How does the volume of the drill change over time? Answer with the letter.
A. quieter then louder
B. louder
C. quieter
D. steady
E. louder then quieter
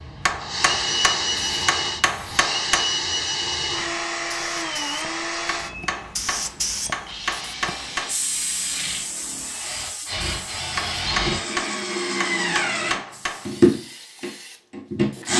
A.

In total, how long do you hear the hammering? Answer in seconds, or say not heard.
8 s.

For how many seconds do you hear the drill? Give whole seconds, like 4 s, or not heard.
15 s.